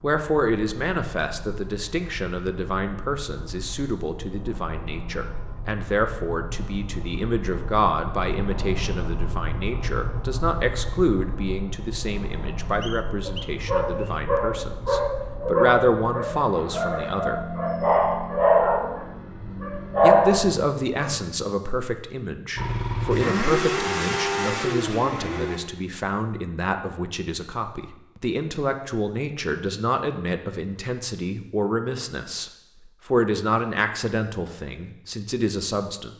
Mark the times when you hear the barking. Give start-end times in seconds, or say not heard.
13.2-21.4.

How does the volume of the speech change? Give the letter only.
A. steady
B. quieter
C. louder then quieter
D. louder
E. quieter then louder
A.